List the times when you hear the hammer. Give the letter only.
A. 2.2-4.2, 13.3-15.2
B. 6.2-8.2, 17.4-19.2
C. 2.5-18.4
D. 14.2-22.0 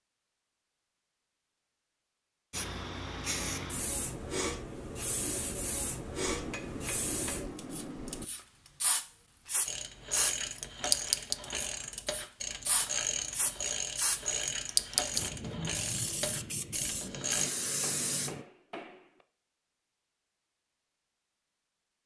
B.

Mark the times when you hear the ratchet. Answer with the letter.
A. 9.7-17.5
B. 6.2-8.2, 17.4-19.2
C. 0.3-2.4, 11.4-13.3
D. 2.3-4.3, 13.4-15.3
A.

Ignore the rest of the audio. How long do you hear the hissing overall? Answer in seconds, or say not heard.
16 s.